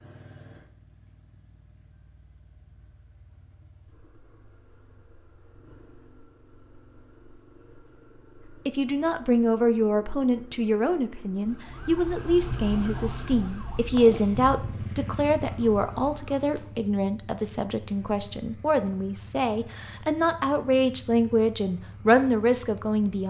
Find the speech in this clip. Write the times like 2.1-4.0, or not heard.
8.7-23.2.